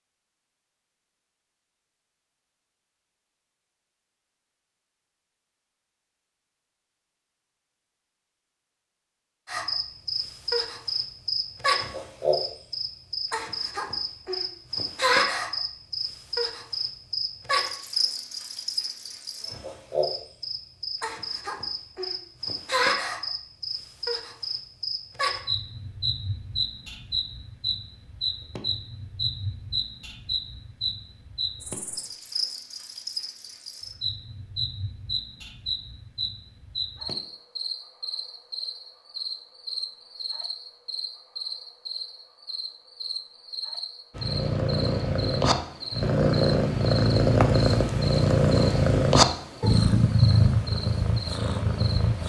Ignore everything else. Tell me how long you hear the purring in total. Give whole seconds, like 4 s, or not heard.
8 s.